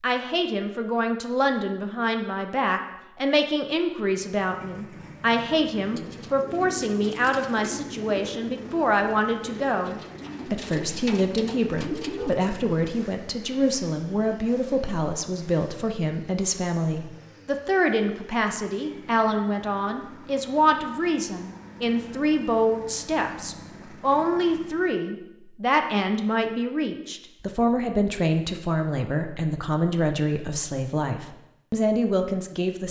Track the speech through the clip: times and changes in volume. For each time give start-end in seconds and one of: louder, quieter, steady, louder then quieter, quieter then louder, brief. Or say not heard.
0.0-32.8 steady.